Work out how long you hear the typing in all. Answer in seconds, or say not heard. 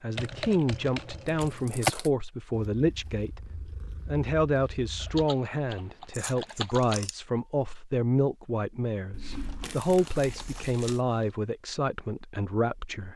6 s.